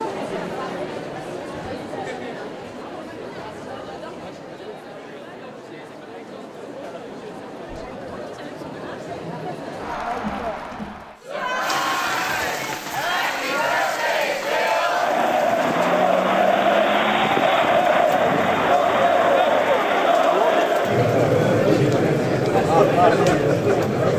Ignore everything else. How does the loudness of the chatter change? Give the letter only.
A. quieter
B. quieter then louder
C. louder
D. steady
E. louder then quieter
C.